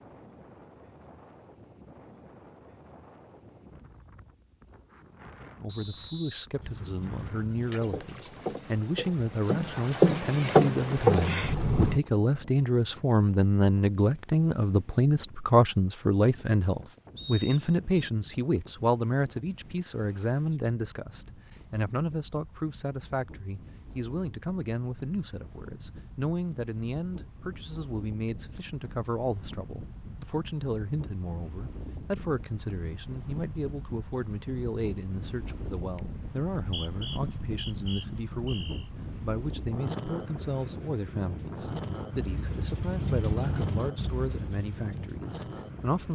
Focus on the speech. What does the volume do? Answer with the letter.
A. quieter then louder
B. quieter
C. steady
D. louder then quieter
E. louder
B.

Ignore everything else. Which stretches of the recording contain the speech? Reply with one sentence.
You can hear the speech from 5.5 to 46.1 s.